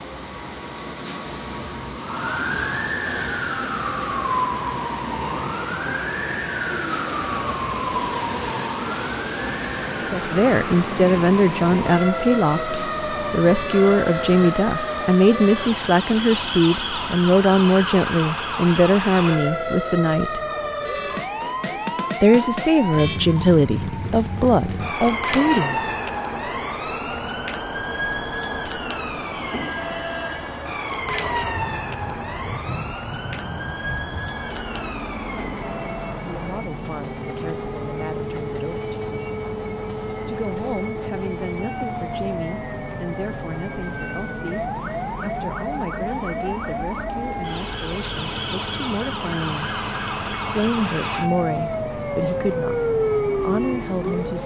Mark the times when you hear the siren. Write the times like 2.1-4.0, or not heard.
1.9-54.4.